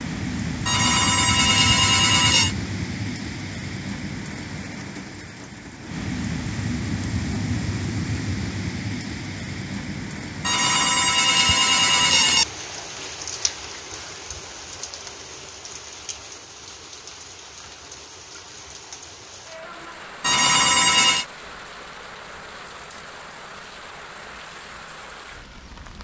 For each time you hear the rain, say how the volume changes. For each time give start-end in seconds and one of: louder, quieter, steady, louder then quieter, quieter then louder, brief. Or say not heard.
0.0-25.9 quieter.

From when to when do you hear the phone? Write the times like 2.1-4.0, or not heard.
0.7-2.5, 10.4-12.4, 20.2-21.2.